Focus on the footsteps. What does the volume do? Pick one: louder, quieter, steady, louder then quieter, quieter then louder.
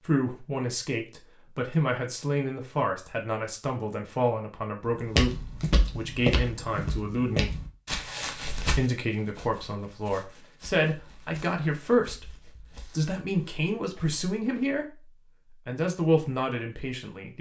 quieter.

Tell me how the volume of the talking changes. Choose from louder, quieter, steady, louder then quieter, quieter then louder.
steady.